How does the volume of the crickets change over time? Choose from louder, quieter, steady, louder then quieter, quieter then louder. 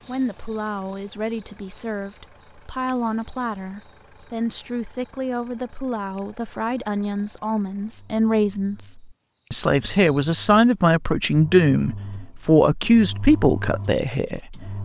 quieter.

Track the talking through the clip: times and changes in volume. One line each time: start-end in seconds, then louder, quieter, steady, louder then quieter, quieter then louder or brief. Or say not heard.
0.1-14.8 louder.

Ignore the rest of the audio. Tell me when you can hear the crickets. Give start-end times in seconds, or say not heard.
0.0-10.3.